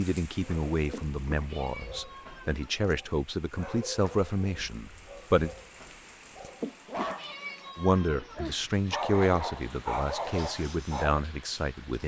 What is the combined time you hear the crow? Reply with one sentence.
The crow can't be heard in this clip.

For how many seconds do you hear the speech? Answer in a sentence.
The speech can be heard for 10 seconds in total.